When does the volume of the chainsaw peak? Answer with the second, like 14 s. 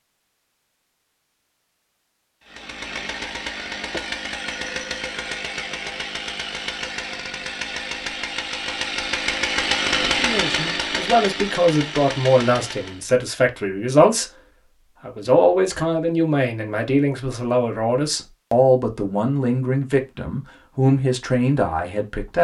10 s.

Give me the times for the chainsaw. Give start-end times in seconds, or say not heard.
2.5-13.1.